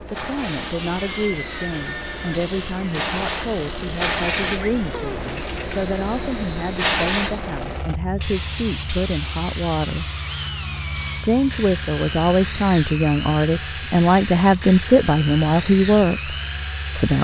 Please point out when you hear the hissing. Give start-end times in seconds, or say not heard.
0.0-17.1.